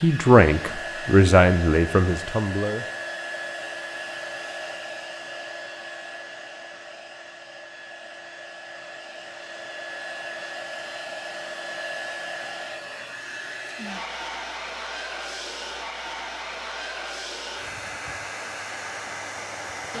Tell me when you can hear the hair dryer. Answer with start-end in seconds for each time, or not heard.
0.0-19.9.